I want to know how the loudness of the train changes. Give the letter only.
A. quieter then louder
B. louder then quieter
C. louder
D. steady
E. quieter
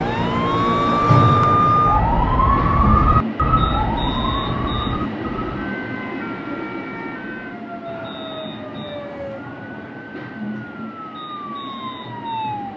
E.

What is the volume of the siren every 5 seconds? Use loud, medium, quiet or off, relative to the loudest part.
loud, quiet, quiet.